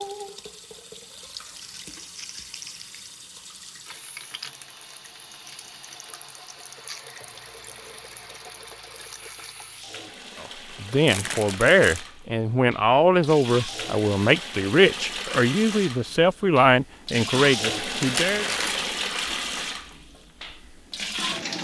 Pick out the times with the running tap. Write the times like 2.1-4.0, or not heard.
0.0-21.5.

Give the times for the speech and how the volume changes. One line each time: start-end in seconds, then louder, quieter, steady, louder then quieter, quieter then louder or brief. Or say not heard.
10.4-18.4 steady.